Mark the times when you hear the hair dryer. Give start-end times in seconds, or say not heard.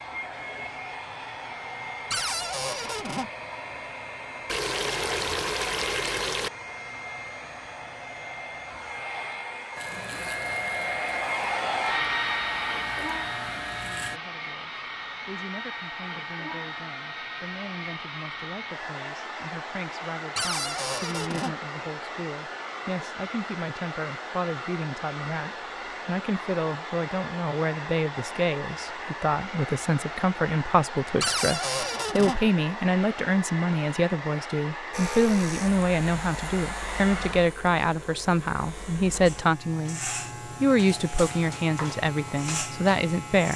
0.0-37.5.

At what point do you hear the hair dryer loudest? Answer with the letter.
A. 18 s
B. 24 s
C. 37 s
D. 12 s
D.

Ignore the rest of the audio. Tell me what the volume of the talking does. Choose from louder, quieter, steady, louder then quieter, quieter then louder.
louder.